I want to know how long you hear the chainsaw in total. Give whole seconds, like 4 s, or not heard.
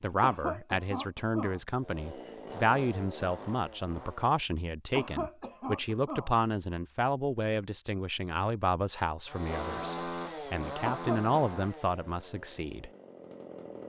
7 s.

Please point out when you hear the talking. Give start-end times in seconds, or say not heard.
0.0-12.9.